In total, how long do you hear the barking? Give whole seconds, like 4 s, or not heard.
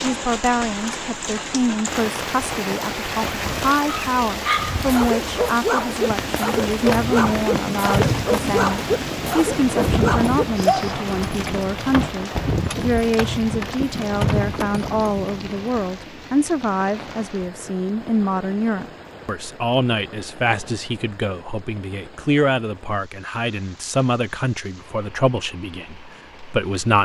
7 s.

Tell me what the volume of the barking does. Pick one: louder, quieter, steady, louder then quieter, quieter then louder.
steady.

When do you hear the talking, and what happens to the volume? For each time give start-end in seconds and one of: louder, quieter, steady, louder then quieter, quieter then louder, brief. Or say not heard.
0.0-27.0 steady.